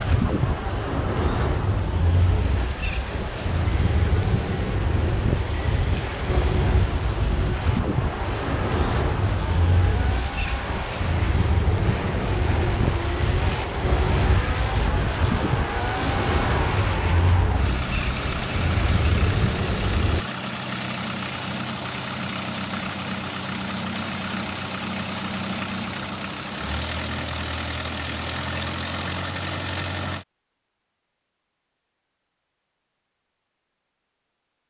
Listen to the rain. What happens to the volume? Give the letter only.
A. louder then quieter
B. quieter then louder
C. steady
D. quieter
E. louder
C.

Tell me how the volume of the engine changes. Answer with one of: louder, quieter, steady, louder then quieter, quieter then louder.
louder.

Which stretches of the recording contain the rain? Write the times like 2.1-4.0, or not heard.
0.0-20.2.